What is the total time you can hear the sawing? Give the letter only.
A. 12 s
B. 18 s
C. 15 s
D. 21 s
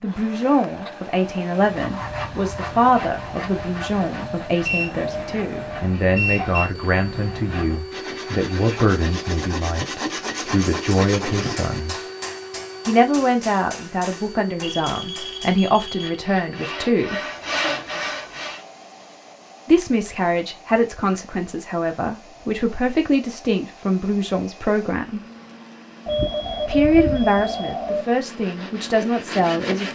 C.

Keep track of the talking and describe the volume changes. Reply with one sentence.
The loudness of the talking stays about the same.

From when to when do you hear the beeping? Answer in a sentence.
You can hear the beeping from 4.6 to 6.7 s, from 14.6 to 16.1 s and from 26.1 to 28.1 s.